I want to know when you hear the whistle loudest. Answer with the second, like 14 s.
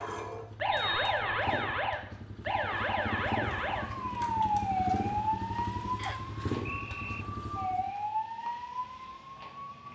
1 s.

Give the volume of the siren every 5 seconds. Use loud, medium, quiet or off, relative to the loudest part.
loud, medium.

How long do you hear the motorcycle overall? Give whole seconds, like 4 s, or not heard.
8 s.